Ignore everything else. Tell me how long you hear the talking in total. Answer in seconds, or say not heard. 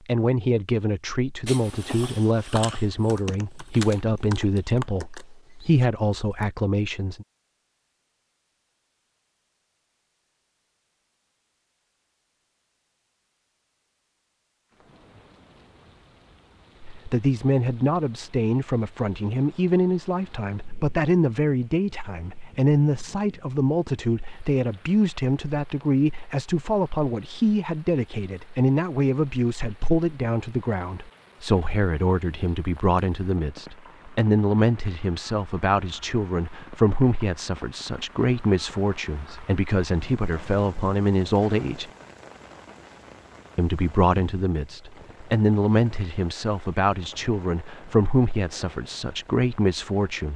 39 s.